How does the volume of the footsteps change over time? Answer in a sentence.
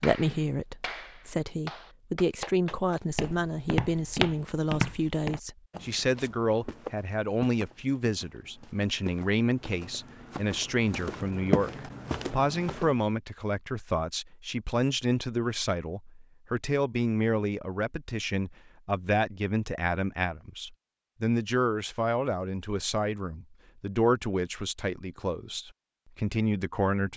The loudness of the footsteps goes down, then up.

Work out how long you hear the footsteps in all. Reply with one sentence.
You can hear the footsteps for 10 seconds altogether.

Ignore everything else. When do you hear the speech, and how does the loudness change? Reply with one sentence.
You can hear the speech from 0.0 to 27.1 s, at a steady volume.